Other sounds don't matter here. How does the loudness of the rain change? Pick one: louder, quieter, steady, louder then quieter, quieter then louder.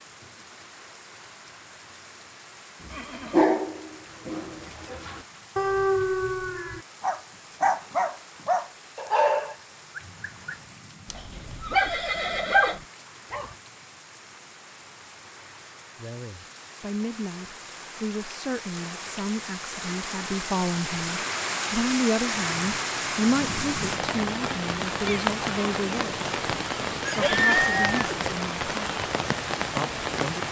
louder.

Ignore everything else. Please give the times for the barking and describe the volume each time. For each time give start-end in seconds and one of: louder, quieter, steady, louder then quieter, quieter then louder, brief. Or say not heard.
2.8-13.6 steady.